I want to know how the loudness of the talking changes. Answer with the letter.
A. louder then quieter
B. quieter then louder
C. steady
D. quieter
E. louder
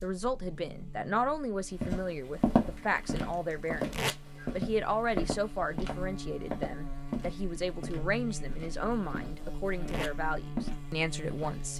C.